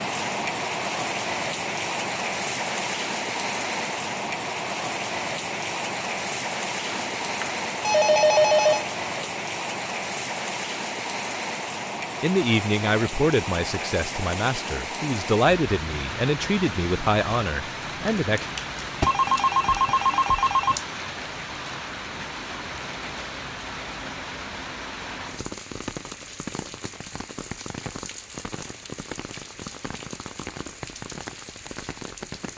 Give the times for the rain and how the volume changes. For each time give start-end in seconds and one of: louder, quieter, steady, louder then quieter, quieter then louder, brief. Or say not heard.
0.0-32.5 quieter.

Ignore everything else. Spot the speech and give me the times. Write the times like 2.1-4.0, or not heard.
12.2-18.4.